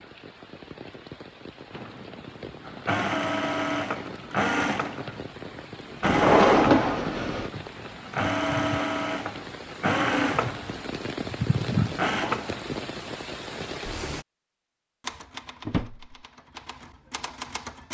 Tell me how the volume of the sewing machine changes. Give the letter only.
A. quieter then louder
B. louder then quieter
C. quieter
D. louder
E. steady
E.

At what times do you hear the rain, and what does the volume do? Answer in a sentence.
You can hear the rain from 0.0 to 14.2 s, getting louder.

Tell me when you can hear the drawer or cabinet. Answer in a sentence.
You can hear the drawer or cabinet from 6.0 to 7.5 s and from 15.7 to 16.1 s.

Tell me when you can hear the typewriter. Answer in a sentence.
The typewriter can be heard from 15.0 to 17.9 s.